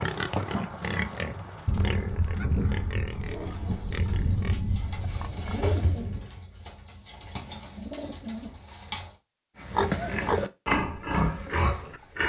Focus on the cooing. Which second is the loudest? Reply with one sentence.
The volume of the cooing peaks at 6 seconds.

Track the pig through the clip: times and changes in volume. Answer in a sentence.
You can hear the pig from 0.0 to 5.7 s, getting quieter; and briefly from 9.6 to 12.2 s.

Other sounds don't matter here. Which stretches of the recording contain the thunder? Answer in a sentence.
The thunder can be heard from 1.6 to 6.2 s.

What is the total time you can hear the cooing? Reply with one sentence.
You can hear the cooing for 6 seconds altogether.